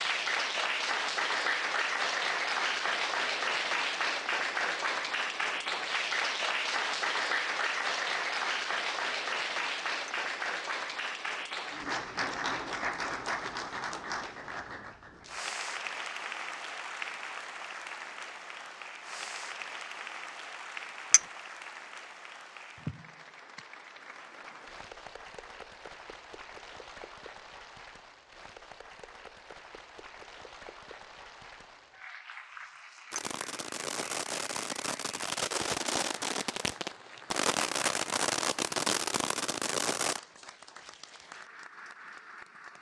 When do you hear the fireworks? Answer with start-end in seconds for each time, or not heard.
33.1-40.2.